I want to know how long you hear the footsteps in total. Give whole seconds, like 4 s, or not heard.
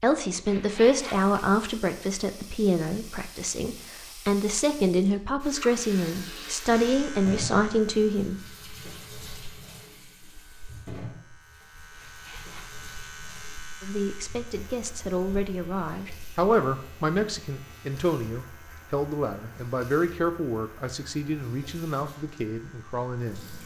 not heard.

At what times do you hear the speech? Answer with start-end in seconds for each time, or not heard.
0.0-8.4, 13.8-23.4.